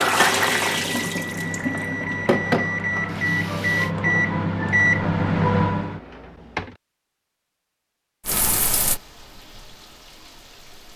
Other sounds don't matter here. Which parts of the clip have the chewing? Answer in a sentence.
You can't hear the chewing here.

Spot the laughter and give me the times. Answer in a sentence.
You can't hear the laughter here.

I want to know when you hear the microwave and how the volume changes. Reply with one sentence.
You can hear the microwave from 0.0 to 6.7 s, getting louder.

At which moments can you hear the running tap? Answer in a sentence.
The running tap can be heard from 0.0 to 3.9 s and from 8.2 to 10.9 s.